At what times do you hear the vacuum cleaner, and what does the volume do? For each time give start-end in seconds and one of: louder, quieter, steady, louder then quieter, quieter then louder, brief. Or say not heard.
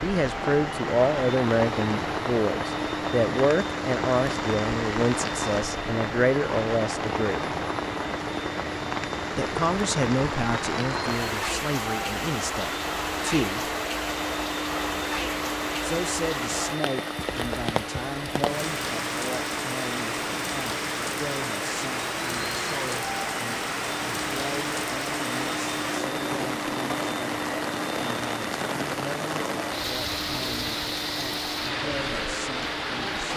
0.0-33.3 steady.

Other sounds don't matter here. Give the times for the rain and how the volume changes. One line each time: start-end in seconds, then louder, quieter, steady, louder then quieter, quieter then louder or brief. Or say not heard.
0.0-33.3 steady.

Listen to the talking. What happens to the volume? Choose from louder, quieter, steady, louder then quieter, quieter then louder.
quieter.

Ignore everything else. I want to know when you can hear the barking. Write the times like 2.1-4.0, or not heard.
not heard.